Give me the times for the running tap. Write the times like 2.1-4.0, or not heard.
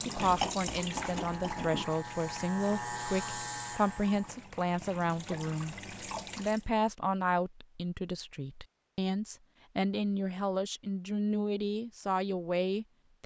0.0-6.7.